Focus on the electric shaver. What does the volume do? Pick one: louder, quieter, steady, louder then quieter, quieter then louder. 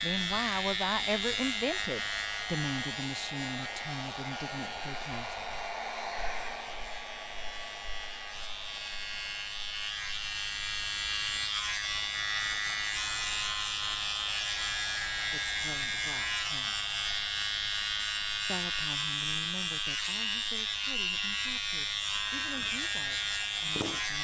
quieter then louder.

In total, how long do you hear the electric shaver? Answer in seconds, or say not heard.
24 s.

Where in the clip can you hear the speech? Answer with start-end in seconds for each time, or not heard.
0.0-5.3, 15.3-16.8, 18.4-24.1.